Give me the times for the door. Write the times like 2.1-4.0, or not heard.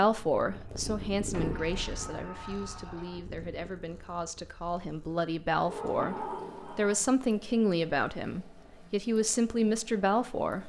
1.3-3.2, 5.6-7.0.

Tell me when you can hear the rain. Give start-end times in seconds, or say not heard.
not heard.